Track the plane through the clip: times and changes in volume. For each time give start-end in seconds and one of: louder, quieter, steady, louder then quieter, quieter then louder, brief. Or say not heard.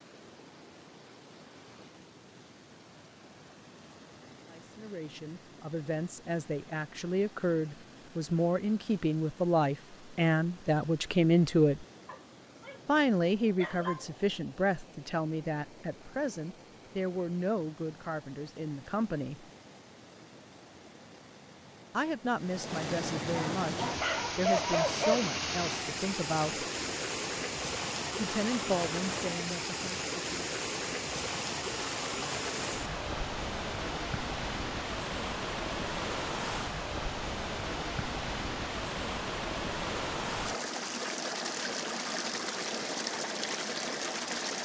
not heard.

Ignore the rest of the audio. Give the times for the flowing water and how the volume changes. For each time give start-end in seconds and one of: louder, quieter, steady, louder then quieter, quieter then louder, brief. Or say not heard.
0.0-44.5 louder.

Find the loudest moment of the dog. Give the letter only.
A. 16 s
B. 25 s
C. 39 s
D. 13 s
B.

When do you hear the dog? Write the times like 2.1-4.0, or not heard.
12.1-12.8, 13.6-14.1, 23.3-25.2.